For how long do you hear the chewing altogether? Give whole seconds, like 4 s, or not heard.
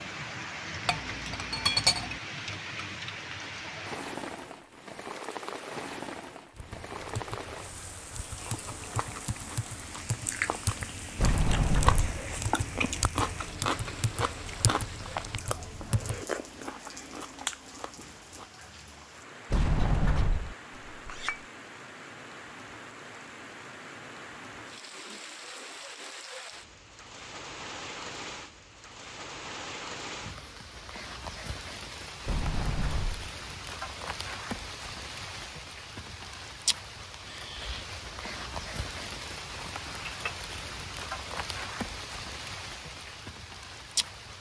10 s.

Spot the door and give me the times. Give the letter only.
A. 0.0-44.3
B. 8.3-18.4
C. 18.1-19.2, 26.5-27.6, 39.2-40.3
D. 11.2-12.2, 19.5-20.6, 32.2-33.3
D.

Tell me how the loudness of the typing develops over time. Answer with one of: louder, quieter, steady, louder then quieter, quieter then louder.
louder.